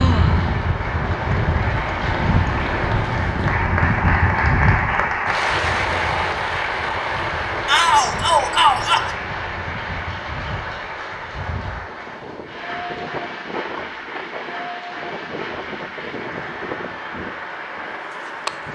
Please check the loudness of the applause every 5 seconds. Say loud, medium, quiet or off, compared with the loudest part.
loud, loud, medium, medium.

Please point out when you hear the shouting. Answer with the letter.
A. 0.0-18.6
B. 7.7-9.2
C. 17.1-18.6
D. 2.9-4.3
B.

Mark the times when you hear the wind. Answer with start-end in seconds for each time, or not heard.
0.0-18.6.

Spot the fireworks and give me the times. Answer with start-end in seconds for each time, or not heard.
not heard.